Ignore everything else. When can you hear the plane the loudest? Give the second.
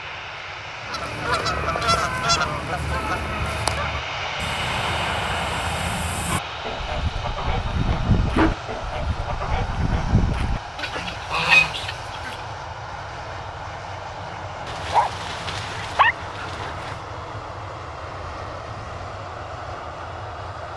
5 s.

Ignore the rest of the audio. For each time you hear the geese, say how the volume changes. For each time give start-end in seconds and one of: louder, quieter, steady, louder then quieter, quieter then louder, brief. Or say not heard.
0.8-12.4 quieter then louder.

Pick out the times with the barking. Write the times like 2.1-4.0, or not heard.
7.5-8.6, 14.7-16.9.